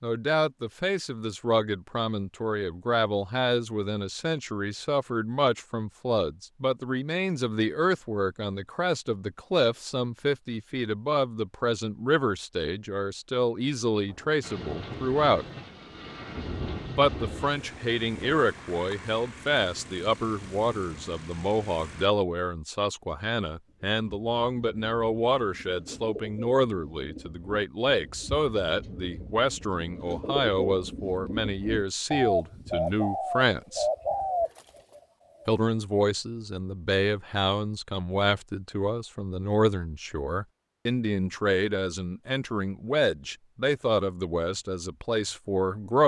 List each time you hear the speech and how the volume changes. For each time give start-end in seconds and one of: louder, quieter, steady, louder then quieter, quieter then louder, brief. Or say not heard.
0.0-15.4 steady
16.9-33.9 steady
35.5-46.0 steady.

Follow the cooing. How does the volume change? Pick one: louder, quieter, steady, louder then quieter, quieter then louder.
louder.